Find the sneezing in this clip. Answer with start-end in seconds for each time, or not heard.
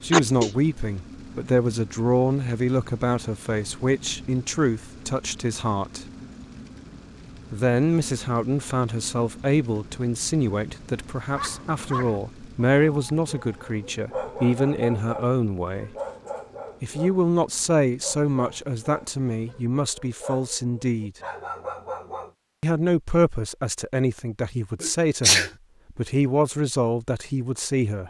0.1-0.5, 24.8-25.5.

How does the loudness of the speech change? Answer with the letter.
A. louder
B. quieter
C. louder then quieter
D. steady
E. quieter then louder
D.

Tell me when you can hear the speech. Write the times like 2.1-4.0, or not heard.
0.0-6.0, 7.5-15.9, 16.8-21.1, 22.6-28.0.